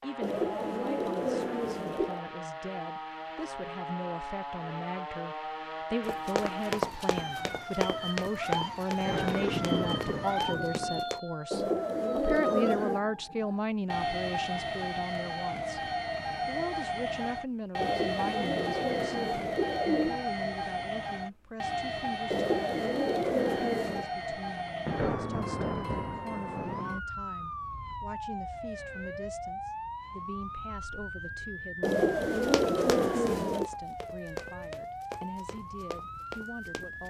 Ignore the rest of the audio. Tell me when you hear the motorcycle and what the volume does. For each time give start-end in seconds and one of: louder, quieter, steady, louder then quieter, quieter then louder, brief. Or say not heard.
not heard.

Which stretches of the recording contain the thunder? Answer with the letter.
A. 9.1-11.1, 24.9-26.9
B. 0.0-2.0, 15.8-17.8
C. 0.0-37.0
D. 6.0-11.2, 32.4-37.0
A.